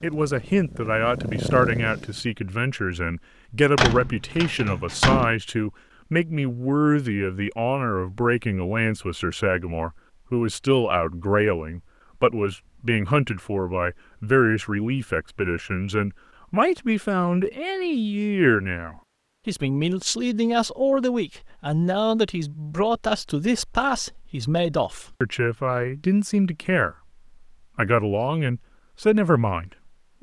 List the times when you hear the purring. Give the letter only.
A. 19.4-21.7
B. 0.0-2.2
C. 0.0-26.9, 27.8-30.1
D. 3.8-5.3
B.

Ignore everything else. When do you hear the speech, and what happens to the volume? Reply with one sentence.
The speech can be heard from 0.0 to 26.9 s, at a steady volume; and briefly from 27.8 to 30.1 s.